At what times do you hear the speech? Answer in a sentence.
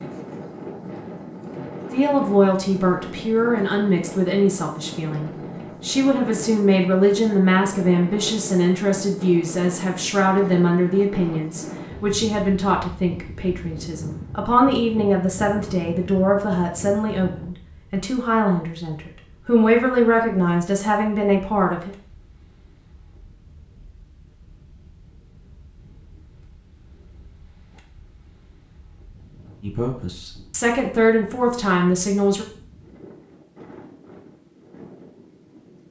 You can hear the speech from 1.9 to 21.9 s and from 29.6 to 32.5 s.